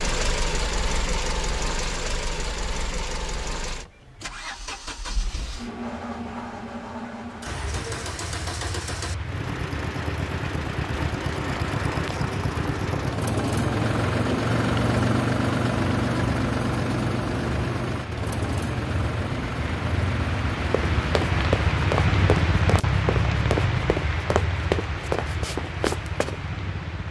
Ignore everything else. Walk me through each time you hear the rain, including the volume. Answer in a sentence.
The rain can be heard from 7.5 to 27.0 s, getting louder.